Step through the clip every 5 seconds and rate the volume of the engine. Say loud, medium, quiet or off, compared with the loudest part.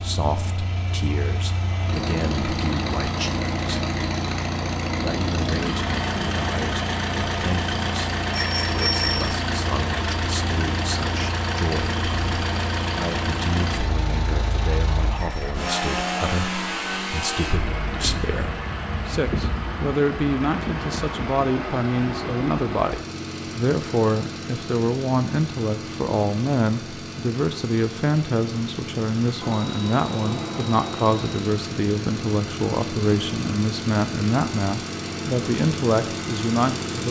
loud, loud, loud, loud, medium, medium, medium, loud.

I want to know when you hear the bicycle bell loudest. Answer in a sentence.
The loudest moment of the bicycle bell is at 9 seconds.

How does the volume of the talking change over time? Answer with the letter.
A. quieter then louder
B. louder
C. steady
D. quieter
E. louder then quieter
B.